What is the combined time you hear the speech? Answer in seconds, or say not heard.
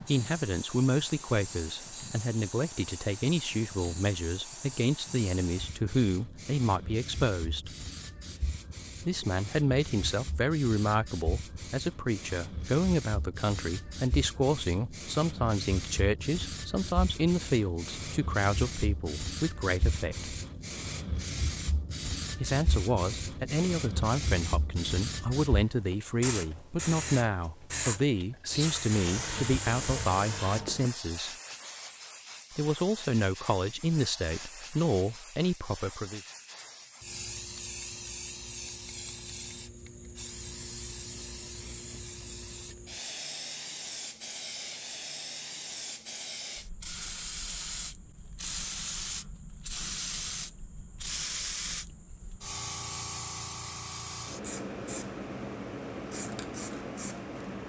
32 s.